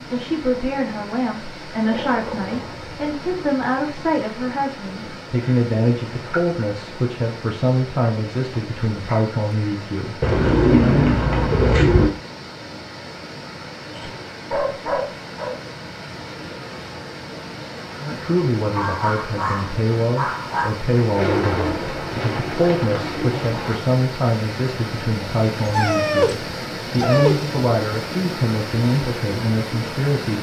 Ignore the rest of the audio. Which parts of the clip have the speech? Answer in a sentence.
The speech can be heard from 0.1 to 11.2 s and from 18.0 to 30.3 s.